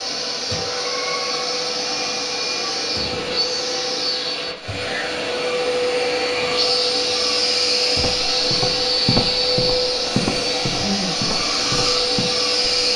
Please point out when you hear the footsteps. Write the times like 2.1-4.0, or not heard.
8.0-12.7.